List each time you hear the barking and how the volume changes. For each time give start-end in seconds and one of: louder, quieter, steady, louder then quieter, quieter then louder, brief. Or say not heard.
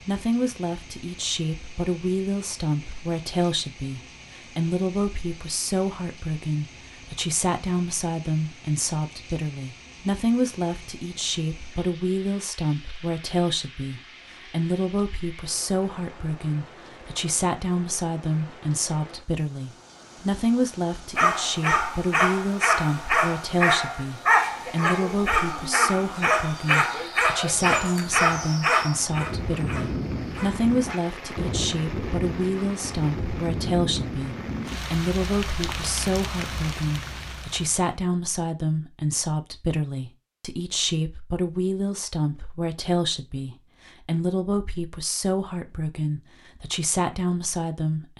21.1-31.0 quieter.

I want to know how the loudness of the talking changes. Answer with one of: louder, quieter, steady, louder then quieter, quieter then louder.
steady.